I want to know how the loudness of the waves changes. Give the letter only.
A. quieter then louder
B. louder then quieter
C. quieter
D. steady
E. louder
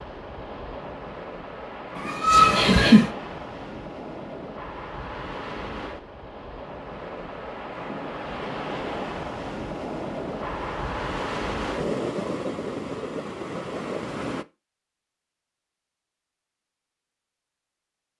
E.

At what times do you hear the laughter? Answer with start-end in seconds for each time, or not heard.
1.9-3.1.